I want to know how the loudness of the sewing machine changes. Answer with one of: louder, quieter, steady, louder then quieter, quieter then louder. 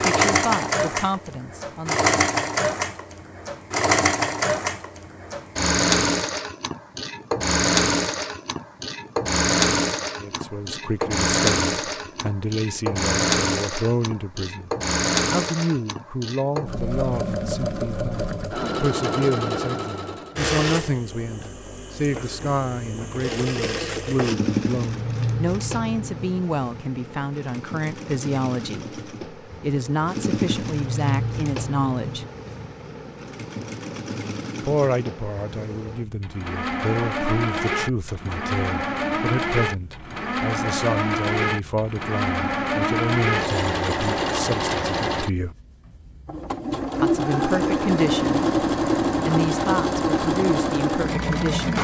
quieter then louder.